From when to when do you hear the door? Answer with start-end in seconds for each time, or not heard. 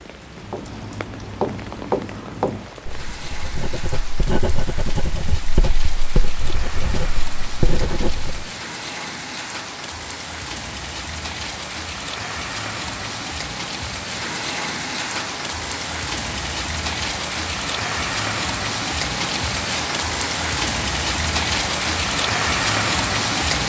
not heard.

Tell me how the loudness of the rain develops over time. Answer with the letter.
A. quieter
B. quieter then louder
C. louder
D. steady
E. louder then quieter
C.